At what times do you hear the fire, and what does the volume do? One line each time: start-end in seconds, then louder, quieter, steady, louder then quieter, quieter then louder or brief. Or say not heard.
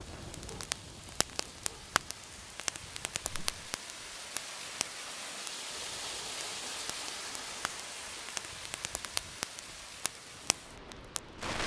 0.0-11.6 quieter then louder.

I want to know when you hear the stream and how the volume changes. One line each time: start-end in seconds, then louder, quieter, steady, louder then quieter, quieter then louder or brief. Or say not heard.
0.0-11.6 louder then quieter.